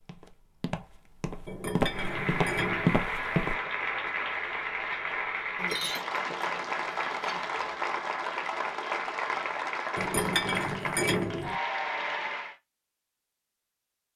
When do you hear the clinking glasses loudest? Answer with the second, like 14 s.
11 s.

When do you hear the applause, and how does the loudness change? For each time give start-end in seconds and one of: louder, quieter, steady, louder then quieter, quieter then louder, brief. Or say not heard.
1.9-12.6 steady.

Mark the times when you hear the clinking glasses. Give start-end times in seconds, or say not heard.
1.4-3.0, 5.5-7.5, 9.9-11.6.